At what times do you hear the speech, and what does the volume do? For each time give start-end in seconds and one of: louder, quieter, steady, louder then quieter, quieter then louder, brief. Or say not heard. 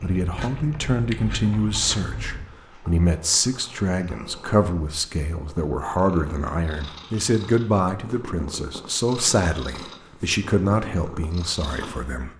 0.0-12.3 steady.